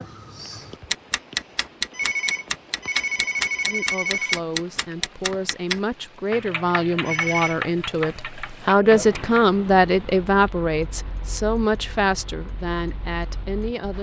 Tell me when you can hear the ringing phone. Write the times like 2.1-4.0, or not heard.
1.9-4.4, 7.0-7.5.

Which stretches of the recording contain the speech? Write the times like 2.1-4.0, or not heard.
3.6-13.9.